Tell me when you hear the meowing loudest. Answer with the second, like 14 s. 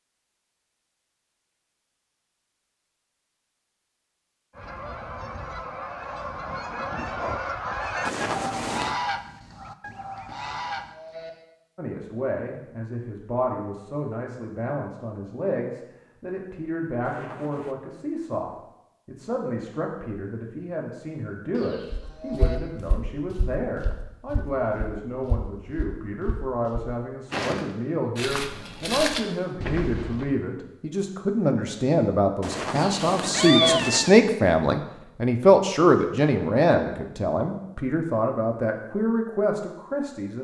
34 s.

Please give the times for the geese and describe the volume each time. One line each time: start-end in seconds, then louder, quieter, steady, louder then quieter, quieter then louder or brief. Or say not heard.
4.5-10.9 louder then quieter.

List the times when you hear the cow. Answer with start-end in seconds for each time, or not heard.
10.2-11.3, 21.5-22.6, 32.8-33.8.